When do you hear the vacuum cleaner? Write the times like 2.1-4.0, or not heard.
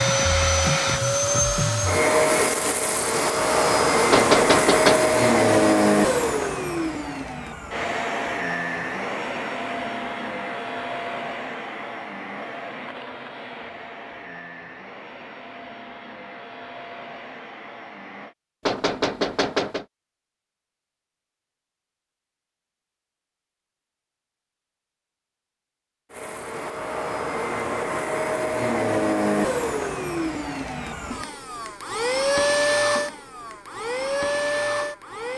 0.0-18.4, 26.1-35.3.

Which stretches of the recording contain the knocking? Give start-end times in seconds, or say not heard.
4.1-5.1, 18.6-19.9.